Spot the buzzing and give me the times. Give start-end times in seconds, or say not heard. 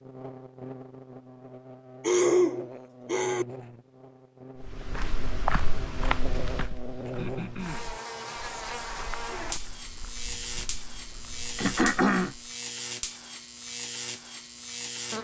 0.0-15.1.